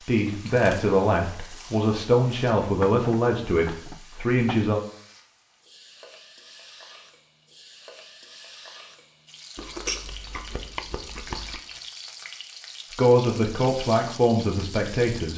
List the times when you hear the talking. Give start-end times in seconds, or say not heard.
0.1-4.8, 12.9-15.3.